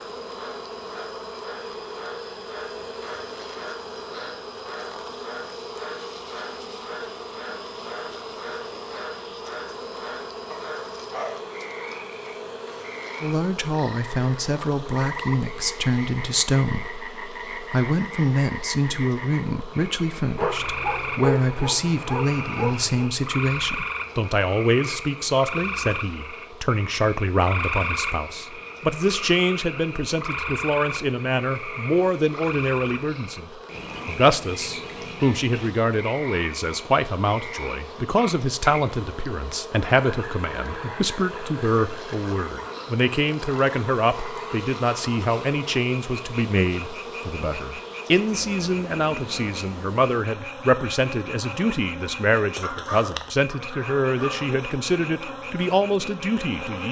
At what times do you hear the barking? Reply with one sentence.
You can hear the barking from 10.5 to 12.3 s, from 20.4 to 23.1 s and from 52.6 to 54.5 s.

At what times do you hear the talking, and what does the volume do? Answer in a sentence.
You can hear the talking from 13.2 to 56.8 s, at a steady volume.